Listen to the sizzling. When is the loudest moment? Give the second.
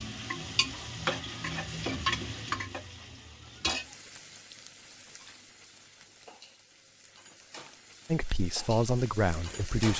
2 s.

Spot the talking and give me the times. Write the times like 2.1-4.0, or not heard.
8.1-9.9.